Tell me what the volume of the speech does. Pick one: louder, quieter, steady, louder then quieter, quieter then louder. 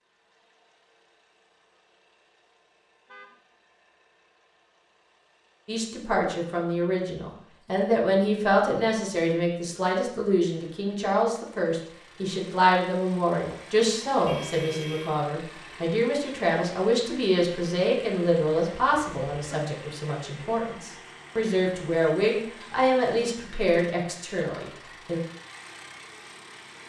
steady.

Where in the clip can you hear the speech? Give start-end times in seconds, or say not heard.
5.7-25.2.